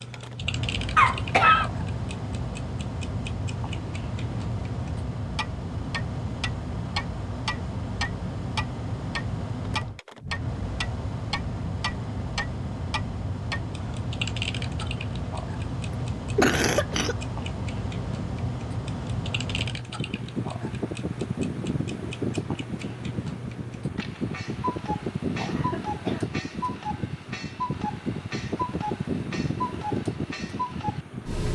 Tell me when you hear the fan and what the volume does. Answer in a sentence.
You can hear the fan from 0.0 to 31.5 s, at a steady volume.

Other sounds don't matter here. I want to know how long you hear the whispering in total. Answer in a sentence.
You can't hear the whispering here.